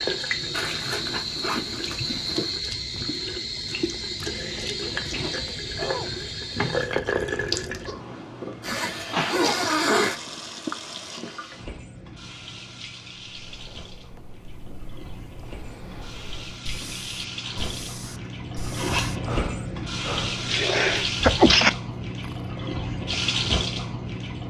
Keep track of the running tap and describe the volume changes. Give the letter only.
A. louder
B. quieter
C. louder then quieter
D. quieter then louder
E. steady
D.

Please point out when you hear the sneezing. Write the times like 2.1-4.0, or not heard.
4.3-6.2, 9.1-11.2, 20.4-21.7.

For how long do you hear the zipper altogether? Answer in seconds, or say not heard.
5 s.